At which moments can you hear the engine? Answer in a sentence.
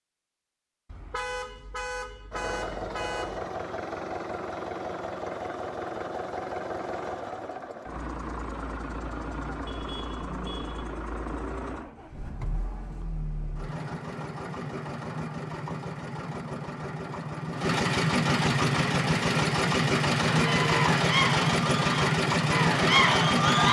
The engine can be heard from 2.3 to 23.6 s.